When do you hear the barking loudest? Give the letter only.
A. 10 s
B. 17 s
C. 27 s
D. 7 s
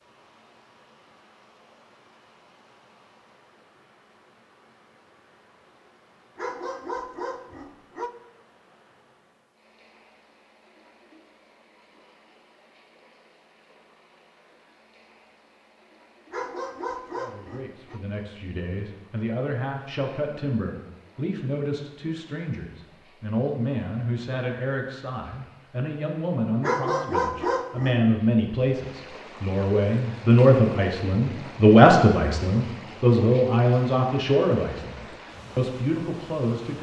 C.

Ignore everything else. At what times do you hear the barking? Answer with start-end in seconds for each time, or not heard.
6.3-8.1, 16.3-18.0, 26.6-28.0.